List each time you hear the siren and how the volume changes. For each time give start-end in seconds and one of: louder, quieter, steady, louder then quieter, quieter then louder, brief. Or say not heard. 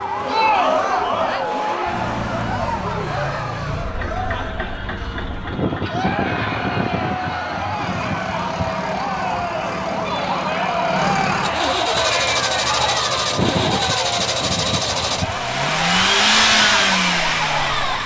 0.0-18.0 steady.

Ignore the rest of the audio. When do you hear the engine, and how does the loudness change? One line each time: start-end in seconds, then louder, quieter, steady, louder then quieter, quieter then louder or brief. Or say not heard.
0.0-18.0 louder.